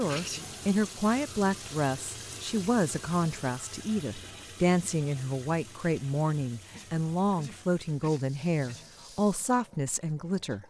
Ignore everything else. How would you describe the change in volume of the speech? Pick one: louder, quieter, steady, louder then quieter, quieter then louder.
steady.